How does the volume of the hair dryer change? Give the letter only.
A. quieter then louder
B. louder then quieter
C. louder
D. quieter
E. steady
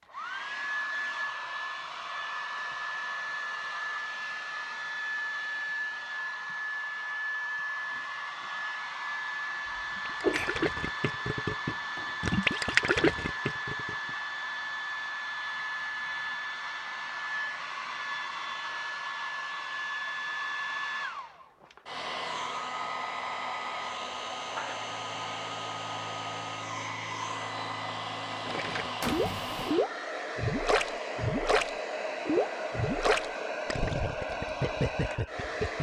E.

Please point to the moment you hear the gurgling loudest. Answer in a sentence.
The loudest moment of the gurgling is at 13 seconds.